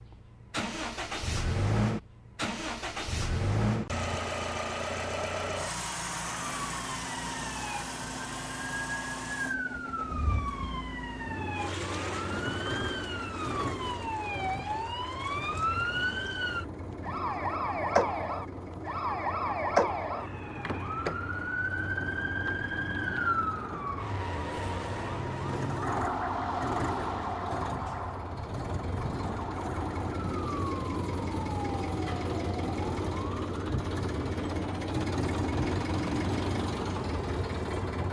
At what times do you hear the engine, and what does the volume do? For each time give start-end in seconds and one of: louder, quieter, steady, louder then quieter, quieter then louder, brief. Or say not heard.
0.0-38.0 quieter then louder.